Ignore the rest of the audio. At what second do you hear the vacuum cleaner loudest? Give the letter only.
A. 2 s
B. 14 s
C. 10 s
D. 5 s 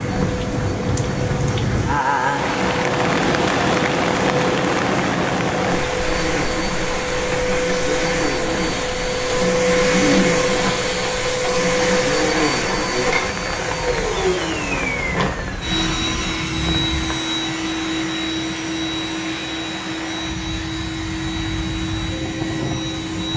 C.